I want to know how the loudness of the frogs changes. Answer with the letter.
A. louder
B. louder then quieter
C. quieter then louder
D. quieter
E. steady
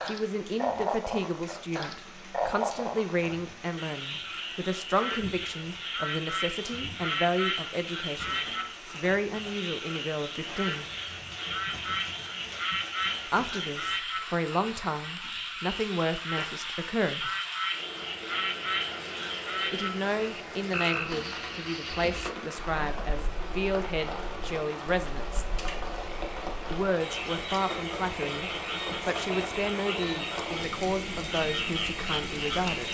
E.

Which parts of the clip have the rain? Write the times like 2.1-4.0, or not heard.
0.0-32.8.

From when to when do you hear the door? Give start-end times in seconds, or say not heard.
not heard.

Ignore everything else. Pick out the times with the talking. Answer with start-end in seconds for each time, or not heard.
0.1-10.8, 13.2-17.3, 19.7-25.4, 26.7-32.8.